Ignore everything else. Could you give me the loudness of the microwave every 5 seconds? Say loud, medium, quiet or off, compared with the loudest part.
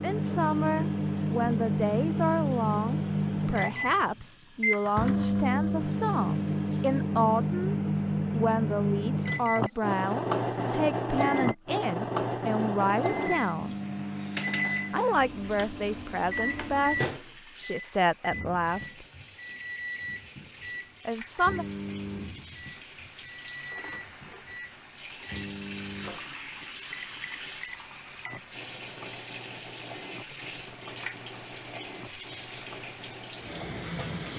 loud, loud, loud, medium, quiet, quiet, quiet.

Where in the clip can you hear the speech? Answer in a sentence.
You can hear the speech from 0.0 to 13.8 s, from 14.9 to 19.1 s and from 21.1 to 21.6 s.